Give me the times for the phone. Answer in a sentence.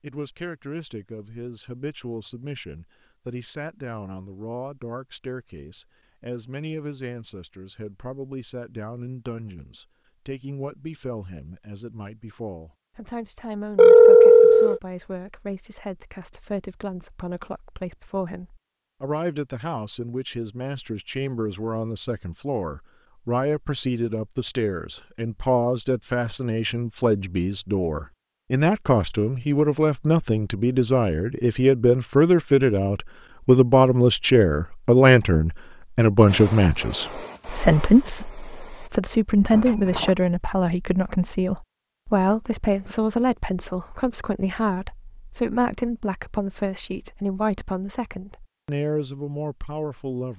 The phone can be heard from 13.8 to 14.8 s and from 39.5 to 40.1 s.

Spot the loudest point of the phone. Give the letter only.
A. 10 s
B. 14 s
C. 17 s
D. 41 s
B.